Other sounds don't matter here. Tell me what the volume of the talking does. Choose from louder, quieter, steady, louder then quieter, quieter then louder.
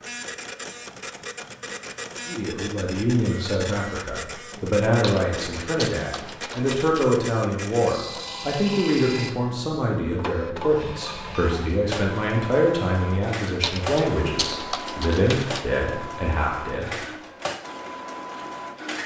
steady.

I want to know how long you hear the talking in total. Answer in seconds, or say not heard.
15 s.